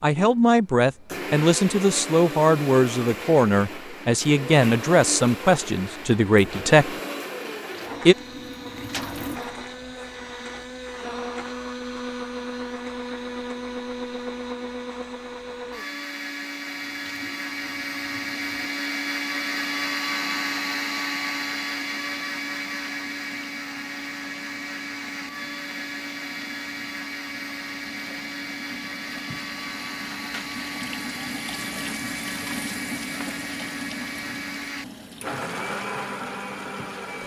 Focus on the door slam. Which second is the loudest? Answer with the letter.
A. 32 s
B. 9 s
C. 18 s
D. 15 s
B.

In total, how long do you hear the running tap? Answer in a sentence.
The running tap can be heard for 22 seconds in total.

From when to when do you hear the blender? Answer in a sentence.
You can hear the blender from 0.1 to 37.2 s.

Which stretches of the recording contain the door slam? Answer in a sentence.
You can hear the door slam from 8.8 to 10.3 s.